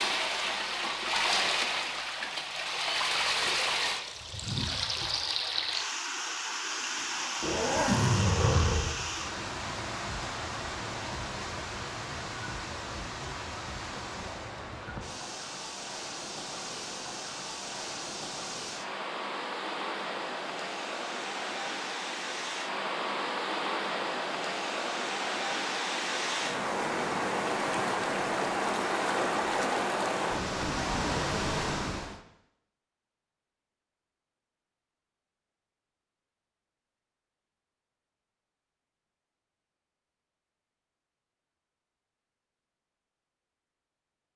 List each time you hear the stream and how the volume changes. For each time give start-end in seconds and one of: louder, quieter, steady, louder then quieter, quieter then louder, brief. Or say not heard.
0.0-32.2 quieter then louder.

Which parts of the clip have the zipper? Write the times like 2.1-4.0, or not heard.
7.4-9.1.